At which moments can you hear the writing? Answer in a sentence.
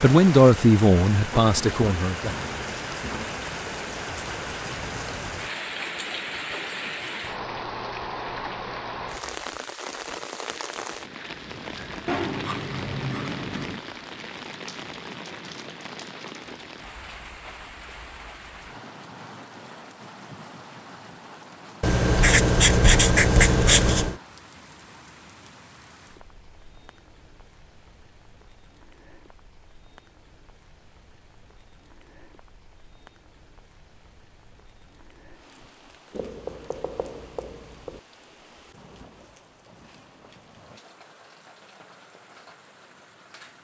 You can hear the writing from 1.4 to 3.3 s, from 12.1 to 13.8 s, from 21.8 to 24.1 s and from 36.1 to 38.0 s.